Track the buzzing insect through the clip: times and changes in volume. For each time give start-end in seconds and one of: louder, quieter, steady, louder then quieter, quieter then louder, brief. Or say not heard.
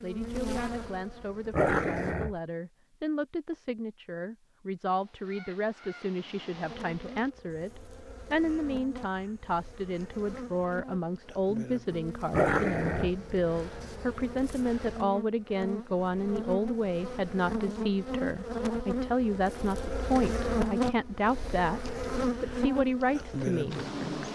0.0-2.2 brief
6.5-24.3 louder.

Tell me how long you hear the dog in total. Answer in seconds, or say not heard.
2 s.